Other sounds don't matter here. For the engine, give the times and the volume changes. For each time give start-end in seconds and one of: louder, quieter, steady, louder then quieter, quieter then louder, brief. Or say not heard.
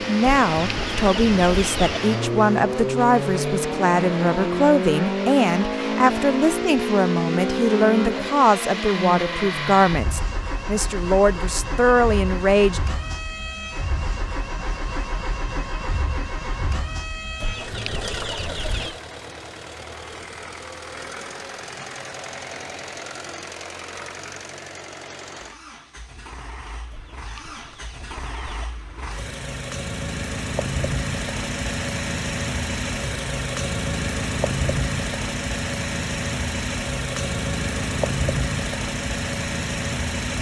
0.0-40.3 quieter then louder.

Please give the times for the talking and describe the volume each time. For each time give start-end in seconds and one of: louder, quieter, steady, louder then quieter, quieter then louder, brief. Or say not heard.
0.0-12.8 steady.